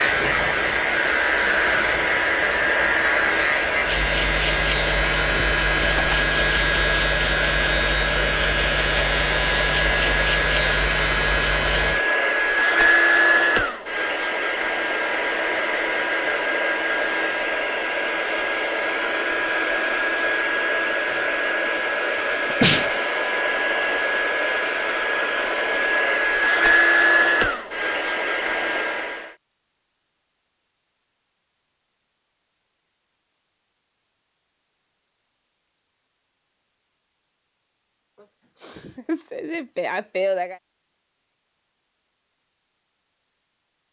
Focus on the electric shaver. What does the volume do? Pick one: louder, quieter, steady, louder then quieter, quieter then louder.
steady.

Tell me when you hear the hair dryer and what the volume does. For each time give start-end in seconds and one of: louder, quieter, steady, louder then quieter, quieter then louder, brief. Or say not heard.
0.0-29.3 steady.